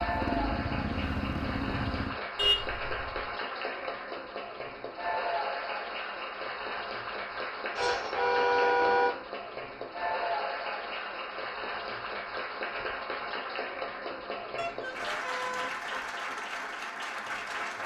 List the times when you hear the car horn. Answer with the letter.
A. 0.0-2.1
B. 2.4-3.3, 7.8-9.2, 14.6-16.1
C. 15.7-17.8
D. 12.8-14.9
B.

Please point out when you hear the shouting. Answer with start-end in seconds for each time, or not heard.
not heard.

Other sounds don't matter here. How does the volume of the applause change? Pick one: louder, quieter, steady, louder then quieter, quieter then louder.
steady.